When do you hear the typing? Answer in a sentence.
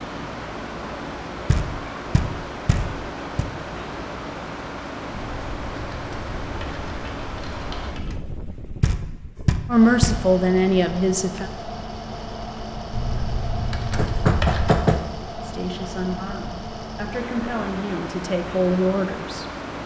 You can hear the typing from 5.1 to 8.1 s and from 12.9 to 14.8 s.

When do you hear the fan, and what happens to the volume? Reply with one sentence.
You can hear the fan from 0.0 to 19.8 s, at a steady volume.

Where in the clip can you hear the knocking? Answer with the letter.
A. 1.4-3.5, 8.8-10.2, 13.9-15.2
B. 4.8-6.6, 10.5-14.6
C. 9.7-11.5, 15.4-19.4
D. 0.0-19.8
A.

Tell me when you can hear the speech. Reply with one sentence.
The speech can be heard from 9.7 to 11.5 s and from 15.4 to 19.4 s.